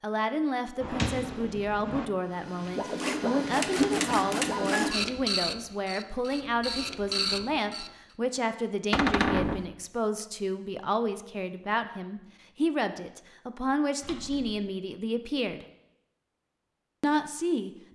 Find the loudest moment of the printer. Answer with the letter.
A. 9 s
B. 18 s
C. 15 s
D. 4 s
D.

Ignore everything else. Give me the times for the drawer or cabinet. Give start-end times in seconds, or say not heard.
0.8-2.0, 8.9-9.7, 14.0-14.7.